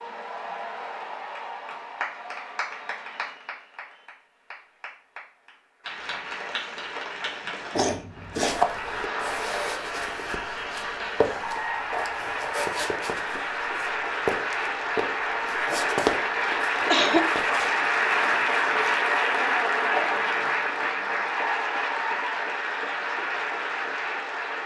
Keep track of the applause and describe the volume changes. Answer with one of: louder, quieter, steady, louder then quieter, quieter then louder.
louder.